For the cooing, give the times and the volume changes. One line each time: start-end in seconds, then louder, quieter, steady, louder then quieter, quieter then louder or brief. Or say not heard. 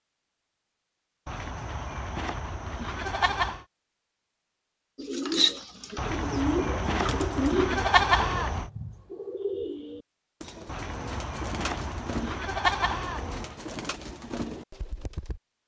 5.0-15.4 quieter.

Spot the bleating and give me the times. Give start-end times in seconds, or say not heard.
1.2-3.6, 6.0-8.7, 10.7-13.6.